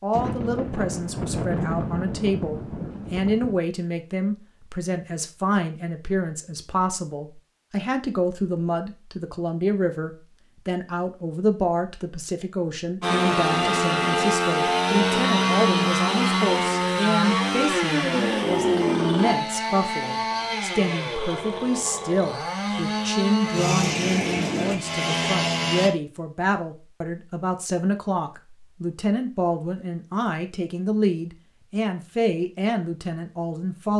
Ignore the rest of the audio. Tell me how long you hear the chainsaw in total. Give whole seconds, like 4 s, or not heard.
13 s.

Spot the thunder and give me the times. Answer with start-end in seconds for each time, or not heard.
0.1-3.6.